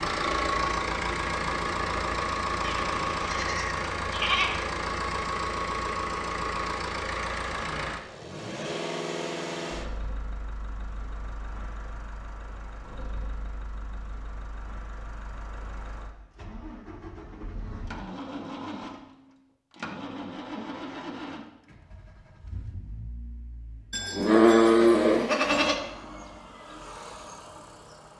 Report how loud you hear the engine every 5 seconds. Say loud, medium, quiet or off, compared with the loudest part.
loud, loud, quiet, quiet, quiet, quiet.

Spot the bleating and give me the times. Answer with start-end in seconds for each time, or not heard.
2.6-4.6, 23.9-25.8.